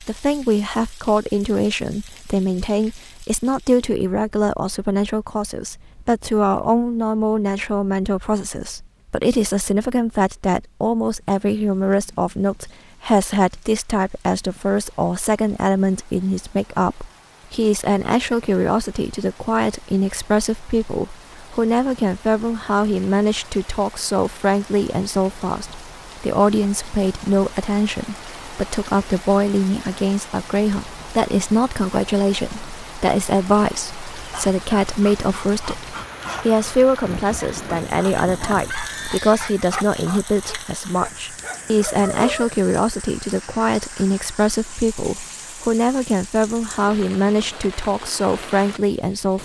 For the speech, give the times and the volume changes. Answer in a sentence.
You can hear the speech from 0.0 to 49.4 s, at a steady volume.